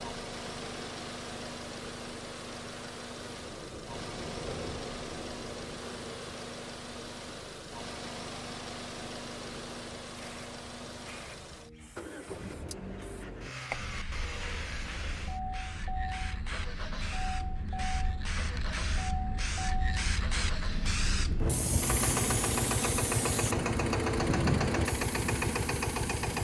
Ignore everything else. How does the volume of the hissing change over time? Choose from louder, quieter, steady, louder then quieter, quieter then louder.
louder.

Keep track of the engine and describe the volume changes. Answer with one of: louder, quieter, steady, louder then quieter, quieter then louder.
louder.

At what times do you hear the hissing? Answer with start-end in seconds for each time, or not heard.
0.0-26.4.